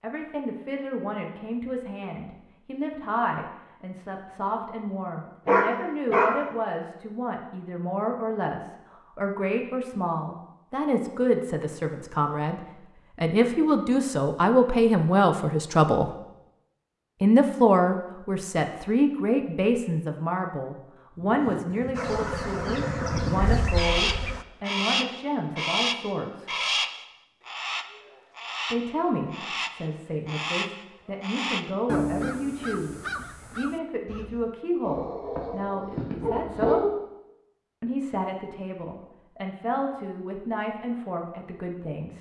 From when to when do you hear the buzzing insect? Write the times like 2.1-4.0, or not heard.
21.9-24.4.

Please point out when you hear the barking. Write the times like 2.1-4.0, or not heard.
5.5-6.3, 34.9-36.8.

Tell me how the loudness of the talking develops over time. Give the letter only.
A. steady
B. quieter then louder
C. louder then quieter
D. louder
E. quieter
C.